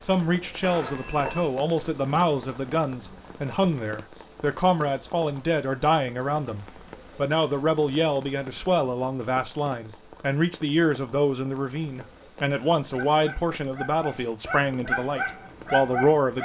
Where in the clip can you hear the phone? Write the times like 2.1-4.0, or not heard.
0.6-1.5.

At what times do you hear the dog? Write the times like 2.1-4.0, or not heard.
12.8-16.3.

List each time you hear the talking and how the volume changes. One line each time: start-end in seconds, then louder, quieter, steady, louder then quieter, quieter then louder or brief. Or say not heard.
0.0-16.3 steady.